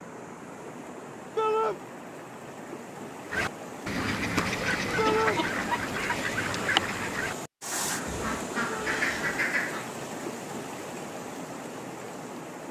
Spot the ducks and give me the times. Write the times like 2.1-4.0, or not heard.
3.3-9.9.